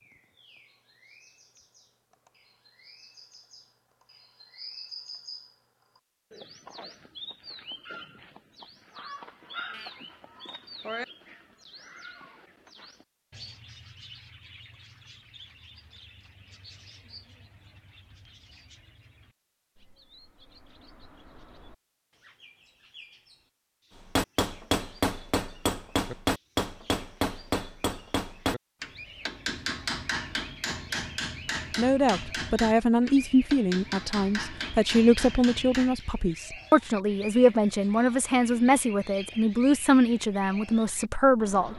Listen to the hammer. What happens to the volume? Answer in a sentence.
The volume of the hammer goes down.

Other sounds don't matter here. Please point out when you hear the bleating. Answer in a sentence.
The bleating can be heard from 9.7 to 11.1 s.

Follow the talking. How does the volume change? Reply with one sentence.
The loudness of the talking stays about the same.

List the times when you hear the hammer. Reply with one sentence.
You can hear the hammer from 24.1 to 36.0 s.